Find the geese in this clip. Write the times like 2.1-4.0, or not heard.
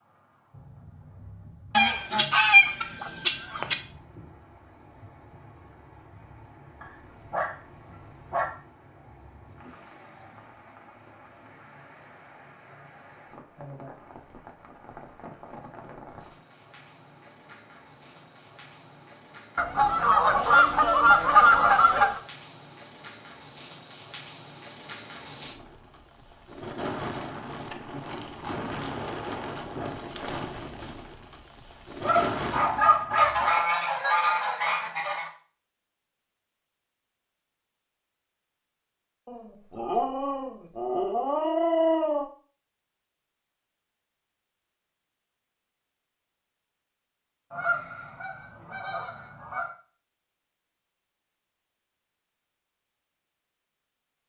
1.7-3.8, 19.6-22.2, 33.1-35.3, 47.5-49.7.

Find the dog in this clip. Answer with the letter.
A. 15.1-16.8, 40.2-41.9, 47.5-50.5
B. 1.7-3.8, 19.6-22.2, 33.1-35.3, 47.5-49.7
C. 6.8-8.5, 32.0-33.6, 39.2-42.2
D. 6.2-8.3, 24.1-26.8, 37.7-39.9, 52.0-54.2
C.